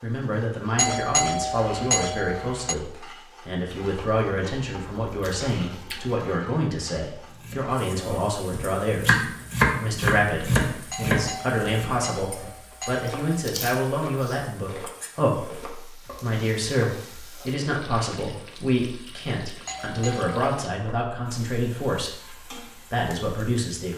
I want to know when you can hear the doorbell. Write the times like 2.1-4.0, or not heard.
0.8-2.8, 10.9-13.2, 19.6-20.4.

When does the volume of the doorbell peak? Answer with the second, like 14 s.
1 s.